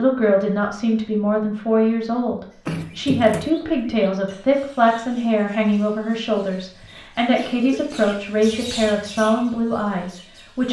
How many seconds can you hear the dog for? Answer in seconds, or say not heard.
not heard.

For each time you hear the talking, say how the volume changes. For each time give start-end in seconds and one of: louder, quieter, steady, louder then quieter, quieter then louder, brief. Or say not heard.
0.0-10.6 steady.